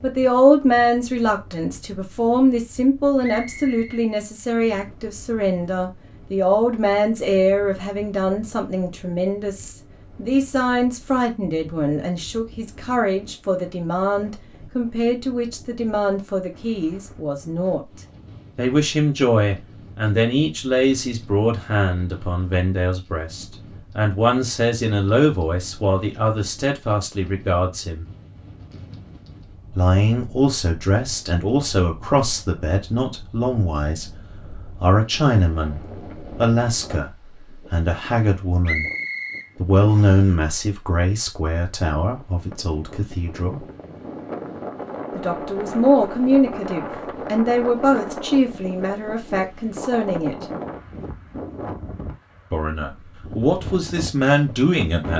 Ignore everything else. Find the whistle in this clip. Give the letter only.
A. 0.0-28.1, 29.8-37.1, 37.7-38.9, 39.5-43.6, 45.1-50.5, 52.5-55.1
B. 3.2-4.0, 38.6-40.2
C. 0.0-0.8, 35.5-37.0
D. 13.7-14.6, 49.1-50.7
B.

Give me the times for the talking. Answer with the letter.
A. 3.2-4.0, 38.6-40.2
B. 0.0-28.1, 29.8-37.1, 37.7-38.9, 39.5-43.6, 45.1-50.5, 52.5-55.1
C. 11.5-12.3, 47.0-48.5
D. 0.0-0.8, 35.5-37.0
B.